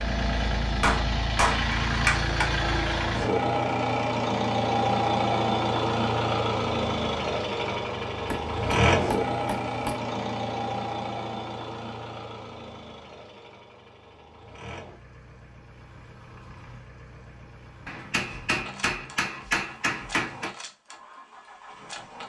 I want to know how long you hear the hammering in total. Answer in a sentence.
You can hear the hammering for 6 seconds altogether.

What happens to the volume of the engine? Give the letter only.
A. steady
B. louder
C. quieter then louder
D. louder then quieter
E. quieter
E.